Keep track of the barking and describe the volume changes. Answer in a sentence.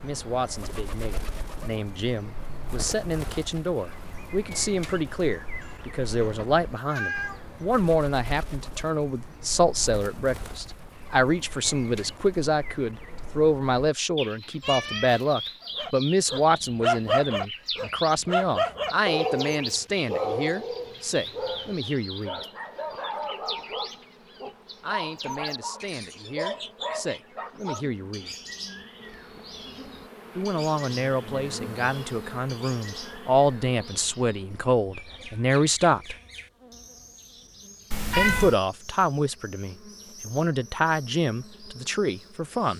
The loudness of the barking goes down.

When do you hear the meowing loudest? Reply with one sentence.
The loudest moment of the meowing is at 38 seconds.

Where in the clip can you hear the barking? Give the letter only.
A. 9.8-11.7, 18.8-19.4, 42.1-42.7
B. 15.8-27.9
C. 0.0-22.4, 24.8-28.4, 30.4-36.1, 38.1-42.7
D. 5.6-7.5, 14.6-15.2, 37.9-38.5
B.